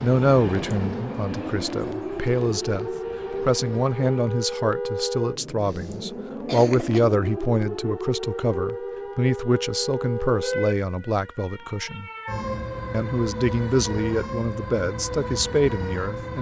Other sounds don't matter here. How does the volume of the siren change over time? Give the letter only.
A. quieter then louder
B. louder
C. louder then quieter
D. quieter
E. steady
E.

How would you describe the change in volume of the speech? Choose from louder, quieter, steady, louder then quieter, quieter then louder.
steady.